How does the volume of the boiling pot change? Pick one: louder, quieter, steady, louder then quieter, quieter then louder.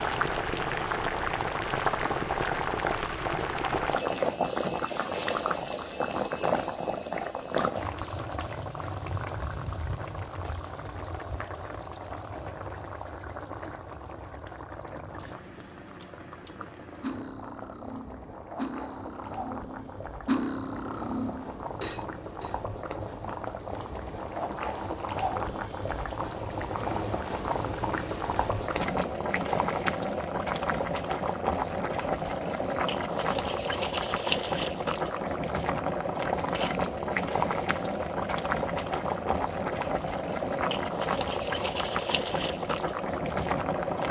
quieter then louder.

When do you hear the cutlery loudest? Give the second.
20 s.